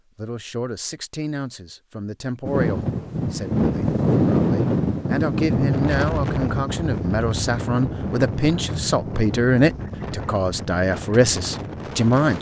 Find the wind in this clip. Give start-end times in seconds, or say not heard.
2.5-12.3.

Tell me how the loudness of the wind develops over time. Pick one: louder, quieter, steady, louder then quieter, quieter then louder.
quieter.